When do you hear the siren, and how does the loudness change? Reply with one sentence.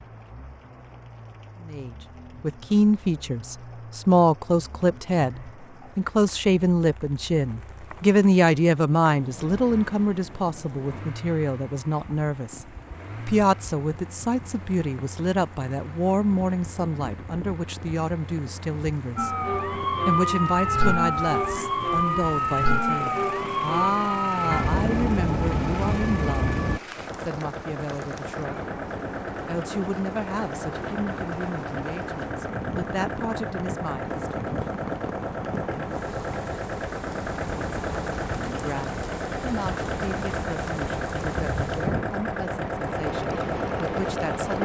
You can hear the siren from 19.1 to 26.8 s, at a steady volume.